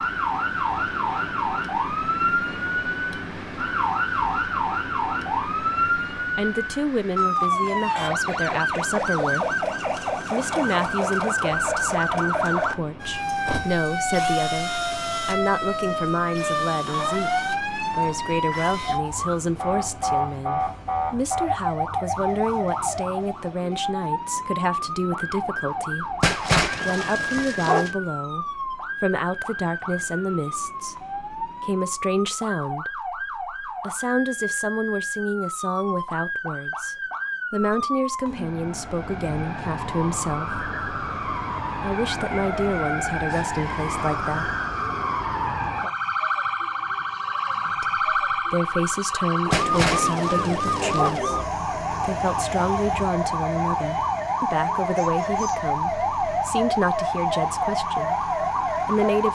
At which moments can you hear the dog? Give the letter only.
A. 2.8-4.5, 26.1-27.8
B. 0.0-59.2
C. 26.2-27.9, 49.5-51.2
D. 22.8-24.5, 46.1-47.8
C.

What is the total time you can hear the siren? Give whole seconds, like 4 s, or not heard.
59 s.